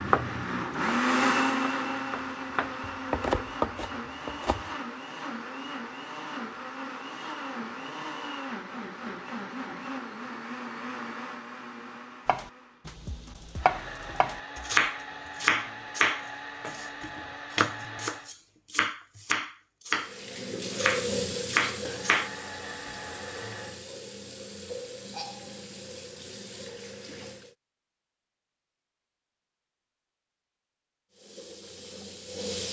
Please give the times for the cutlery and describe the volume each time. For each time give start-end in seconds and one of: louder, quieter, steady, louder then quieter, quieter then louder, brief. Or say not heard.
not heard.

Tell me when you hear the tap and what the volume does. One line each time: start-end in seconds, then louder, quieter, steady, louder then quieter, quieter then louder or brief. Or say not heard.
19.9-27.6 quieter
31.1-32.6 brief.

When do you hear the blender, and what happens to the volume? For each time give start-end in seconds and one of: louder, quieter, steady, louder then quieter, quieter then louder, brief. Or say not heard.
0.0-18.4 quieter
21.9-23.9 brief.